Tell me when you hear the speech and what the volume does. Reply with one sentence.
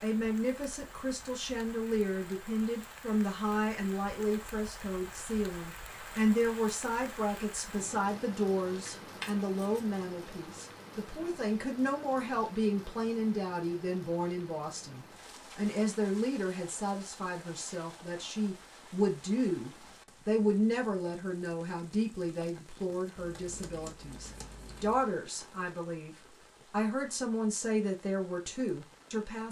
The speech can be heard from 0.0 to 29.4 s, at a steady volume.